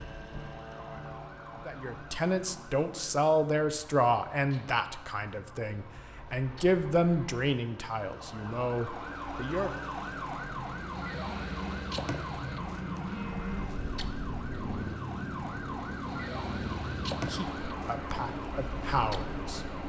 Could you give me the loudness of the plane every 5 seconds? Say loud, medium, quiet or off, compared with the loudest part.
medium, medium, loud, loud.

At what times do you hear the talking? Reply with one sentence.
The talking can be heard from 1.6 to 9.7 s and from 17.2 to 19.6 s.